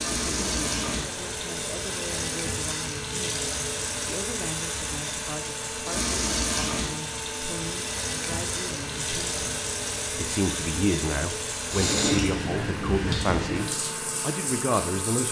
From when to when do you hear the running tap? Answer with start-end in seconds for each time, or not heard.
0.0-15.2.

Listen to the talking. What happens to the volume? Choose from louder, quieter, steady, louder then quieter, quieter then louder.
louder.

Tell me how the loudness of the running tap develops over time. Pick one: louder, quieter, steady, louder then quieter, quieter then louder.
steady.